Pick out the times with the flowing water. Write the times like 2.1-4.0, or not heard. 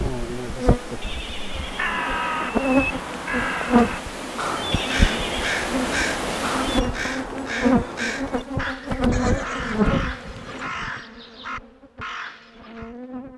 0.0-6.8.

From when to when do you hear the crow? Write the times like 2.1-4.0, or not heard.
1.5-12.9.